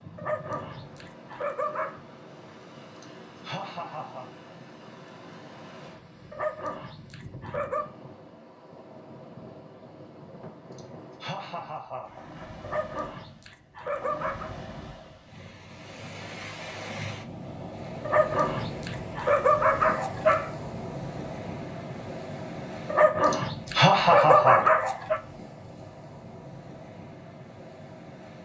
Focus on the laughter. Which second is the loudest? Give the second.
24 s.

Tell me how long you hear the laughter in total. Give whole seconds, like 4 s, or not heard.
4 s.